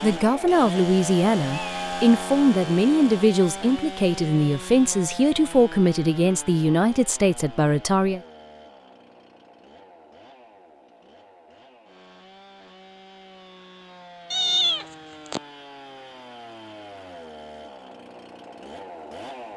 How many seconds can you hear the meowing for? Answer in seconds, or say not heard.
2 s.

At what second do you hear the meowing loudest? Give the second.
15 s.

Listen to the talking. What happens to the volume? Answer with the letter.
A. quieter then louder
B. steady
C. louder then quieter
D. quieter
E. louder
B.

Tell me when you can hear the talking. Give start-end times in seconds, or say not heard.
0.0-8.2.